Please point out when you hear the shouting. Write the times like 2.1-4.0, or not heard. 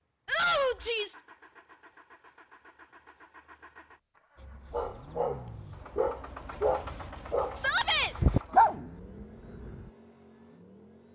0.2-1.2, 7.5-8.2.